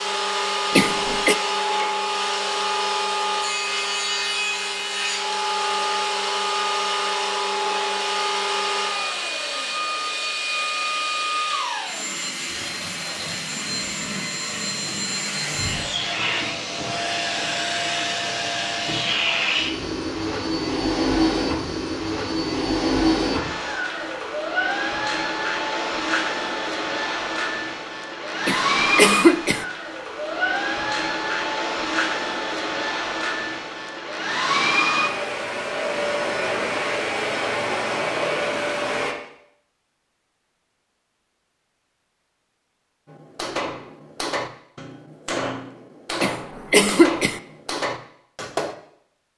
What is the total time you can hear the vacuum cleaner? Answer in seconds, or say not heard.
39 s.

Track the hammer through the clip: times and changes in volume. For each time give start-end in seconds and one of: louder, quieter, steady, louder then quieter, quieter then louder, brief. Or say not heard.
43.0-48.8 steady.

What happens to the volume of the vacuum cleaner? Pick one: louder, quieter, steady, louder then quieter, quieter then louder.
steady.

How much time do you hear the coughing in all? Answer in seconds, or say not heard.
3 s.